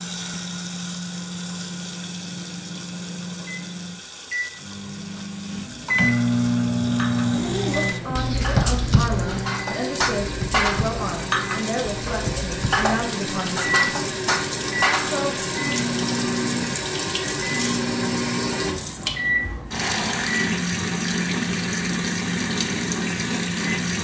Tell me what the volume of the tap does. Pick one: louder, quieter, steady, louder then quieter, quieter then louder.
louder.